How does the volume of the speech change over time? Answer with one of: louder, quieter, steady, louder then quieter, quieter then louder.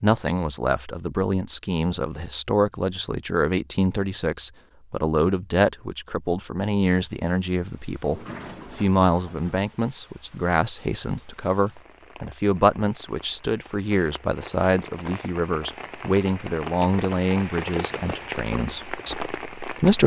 steady.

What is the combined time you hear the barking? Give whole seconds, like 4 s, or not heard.
not heard.